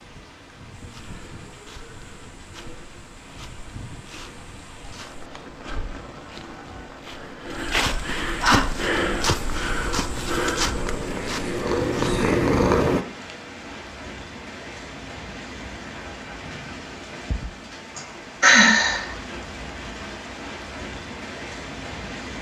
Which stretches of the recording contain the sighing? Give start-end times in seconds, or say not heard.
7.8-8.7, 17.9-19.1.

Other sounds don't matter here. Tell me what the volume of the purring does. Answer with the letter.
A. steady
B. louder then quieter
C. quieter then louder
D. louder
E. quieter
D.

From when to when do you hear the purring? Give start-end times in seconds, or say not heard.
8.5-13.1.